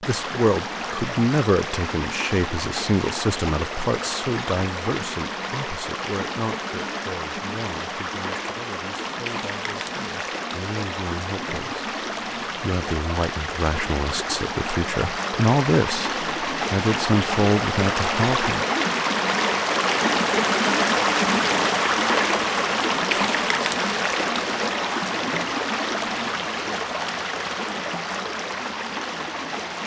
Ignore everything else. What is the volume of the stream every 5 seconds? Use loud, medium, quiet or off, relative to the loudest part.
medium, medium, medium, loud, loud, medium.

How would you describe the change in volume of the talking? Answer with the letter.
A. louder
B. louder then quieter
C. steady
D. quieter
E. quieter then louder
E.